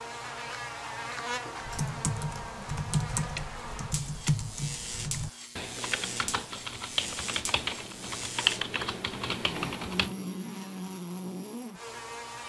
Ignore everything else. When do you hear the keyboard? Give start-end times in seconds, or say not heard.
1.6-10.2.